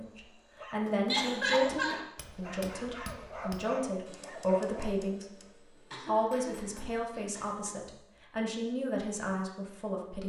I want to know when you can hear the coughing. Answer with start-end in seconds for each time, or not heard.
1.1-1.9, 5.9-7.9.